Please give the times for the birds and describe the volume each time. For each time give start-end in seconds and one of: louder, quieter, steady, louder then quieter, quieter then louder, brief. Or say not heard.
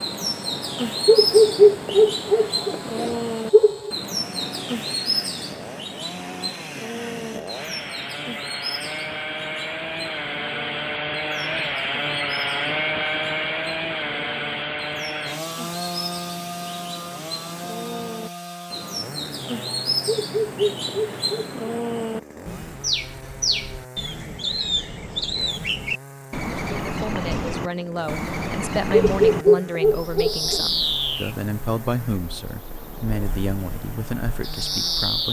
0.0-35.2 quieter then louder.